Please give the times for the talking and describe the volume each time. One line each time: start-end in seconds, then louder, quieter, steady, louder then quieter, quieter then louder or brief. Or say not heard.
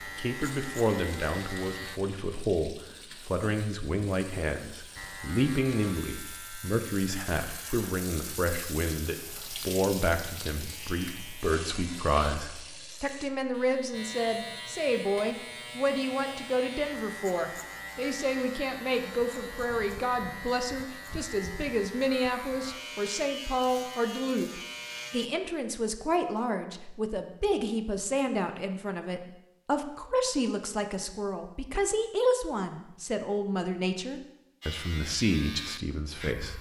0.1-36.5 steady.